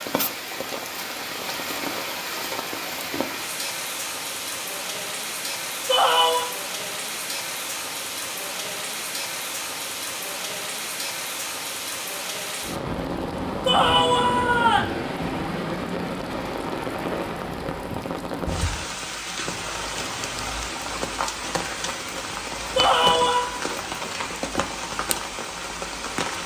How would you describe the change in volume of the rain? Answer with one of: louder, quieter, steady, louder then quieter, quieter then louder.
steady.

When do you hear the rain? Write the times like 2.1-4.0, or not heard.
0.0-26.4.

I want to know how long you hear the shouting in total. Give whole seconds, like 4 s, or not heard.
3 s.